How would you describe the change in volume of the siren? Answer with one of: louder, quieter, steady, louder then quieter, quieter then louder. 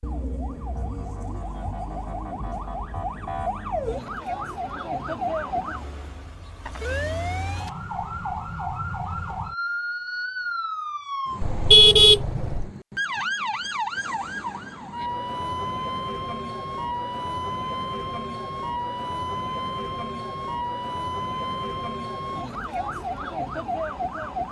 steady.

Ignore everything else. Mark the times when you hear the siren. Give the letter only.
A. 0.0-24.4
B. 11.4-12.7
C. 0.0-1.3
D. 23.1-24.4
A.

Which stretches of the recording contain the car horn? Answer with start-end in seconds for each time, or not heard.
11.4-12.7.